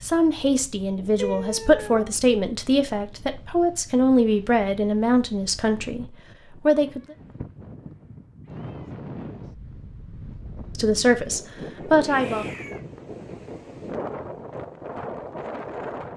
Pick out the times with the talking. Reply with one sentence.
You can hear the talking from 0.0 to 7.2 s and from 10.8 to 12.4 s.